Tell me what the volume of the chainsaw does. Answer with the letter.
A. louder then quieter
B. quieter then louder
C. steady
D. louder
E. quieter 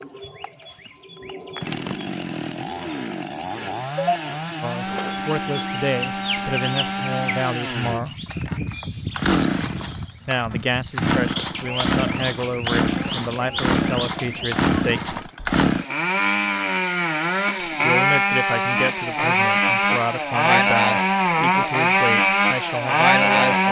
D.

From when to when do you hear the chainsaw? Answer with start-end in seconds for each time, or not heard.
0.0-23.6.